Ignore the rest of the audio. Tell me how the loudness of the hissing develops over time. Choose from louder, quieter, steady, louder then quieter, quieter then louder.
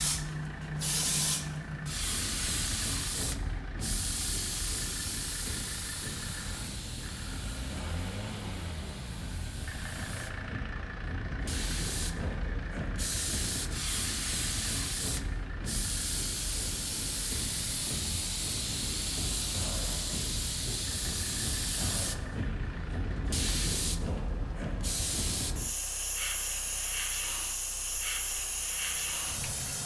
quieter then louder.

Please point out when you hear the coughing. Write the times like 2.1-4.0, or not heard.
not heard.